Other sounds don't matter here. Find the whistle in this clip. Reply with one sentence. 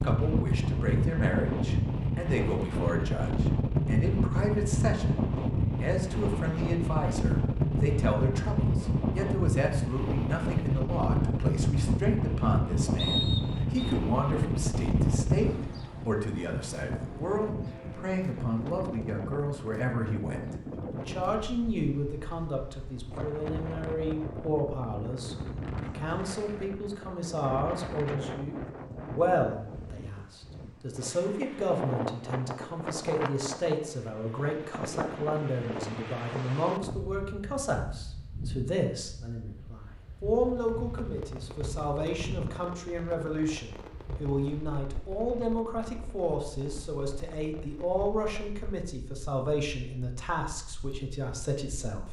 You can hear the whistle from 12.9 to 13.9 s.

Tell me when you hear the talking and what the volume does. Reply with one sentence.
You can hear the talking from 0.0 to 52.0 s, at a steady volume.